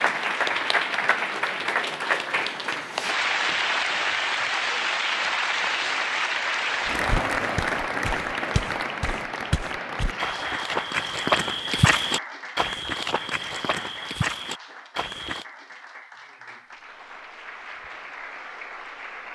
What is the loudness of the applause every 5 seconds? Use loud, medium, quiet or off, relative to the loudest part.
loud, loud, medium, quiet.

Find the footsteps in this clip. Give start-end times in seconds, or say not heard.
6.8-15.4.